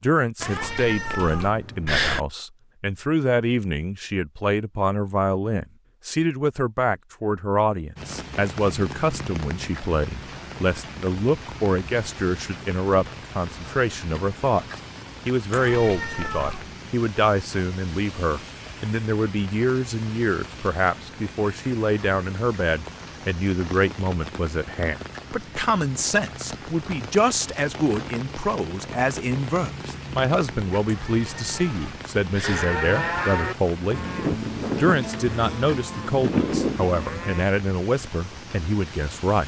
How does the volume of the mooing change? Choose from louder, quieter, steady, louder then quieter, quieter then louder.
quieter then louder.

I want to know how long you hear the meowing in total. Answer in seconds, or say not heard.
5 s.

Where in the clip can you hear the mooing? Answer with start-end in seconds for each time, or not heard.
32.4-37.5.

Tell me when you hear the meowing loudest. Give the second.
2 s.